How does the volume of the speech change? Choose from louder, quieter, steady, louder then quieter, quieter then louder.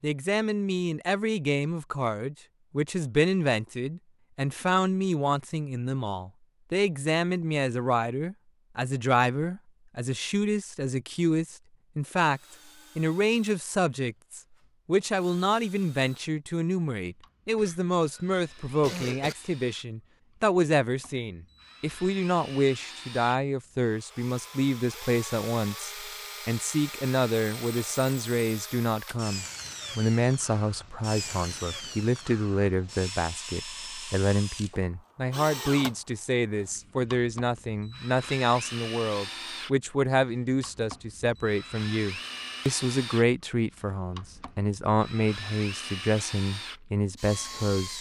steady.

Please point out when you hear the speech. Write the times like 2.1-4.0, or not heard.
0.0-47.9.